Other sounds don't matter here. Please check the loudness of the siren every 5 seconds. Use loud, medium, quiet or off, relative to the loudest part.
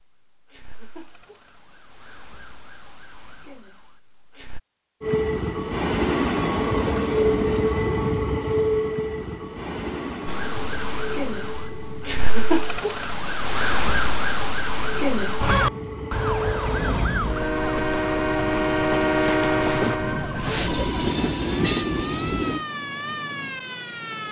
quiet, off, loud, loud, medium.